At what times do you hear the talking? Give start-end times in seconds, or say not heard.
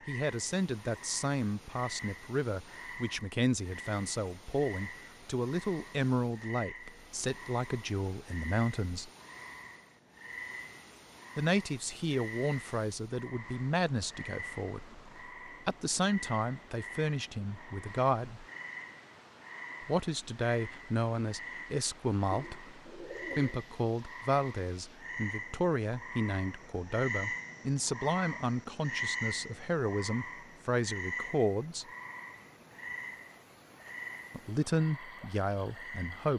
0.1-9.1, 11.3-18.4, 19.8-31.9, 34.3-36.3.